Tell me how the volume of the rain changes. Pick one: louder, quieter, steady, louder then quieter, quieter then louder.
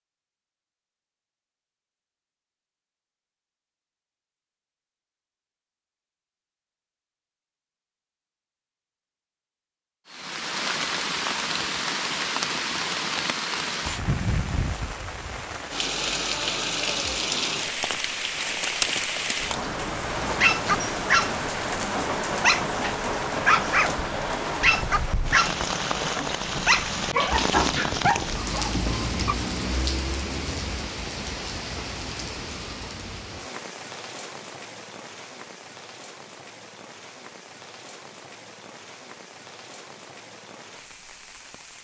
quieter.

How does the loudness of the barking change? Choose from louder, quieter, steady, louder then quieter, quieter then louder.
quieter.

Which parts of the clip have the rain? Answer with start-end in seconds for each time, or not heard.
10.1-41.8.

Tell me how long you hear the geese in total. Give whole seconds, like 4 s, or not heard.
not heard.